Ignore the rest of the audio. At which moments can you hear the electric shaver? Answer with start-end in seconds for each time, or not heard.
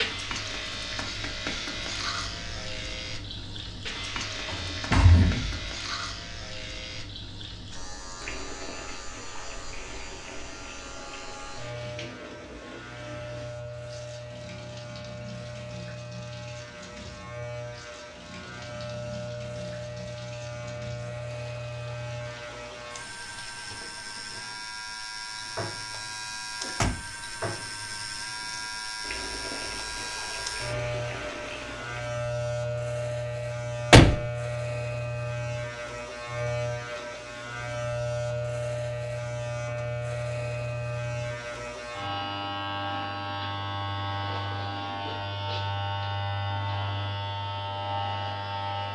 0.0-48.9.